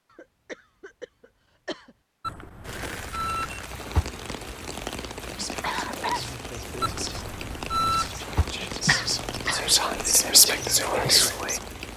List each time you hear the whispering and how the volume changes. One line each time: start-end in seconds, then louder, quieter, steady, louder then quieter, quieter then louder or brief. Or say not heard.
5.2-11.6 louder.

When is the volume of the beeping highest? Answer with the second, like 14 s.
8 s.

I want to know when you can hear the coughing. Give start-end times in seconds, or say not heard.
0.1-1.9, 5.3-6.2, 8.8-9.8.